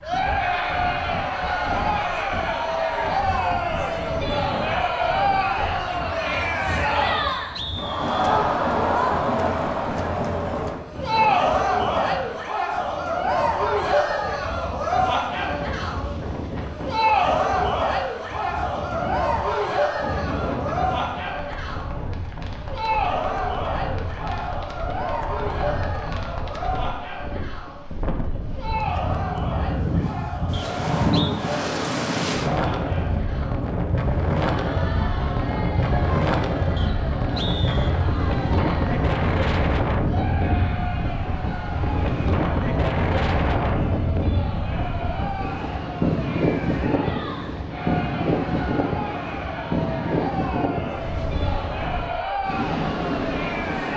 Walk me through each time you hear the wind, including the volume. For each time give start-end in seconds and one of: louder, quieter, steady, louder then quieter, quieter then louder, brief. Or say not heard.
0.0-53.9 louder.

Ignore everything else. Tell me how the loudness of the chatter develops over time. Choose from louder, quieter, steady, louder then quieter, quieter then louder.
quieter.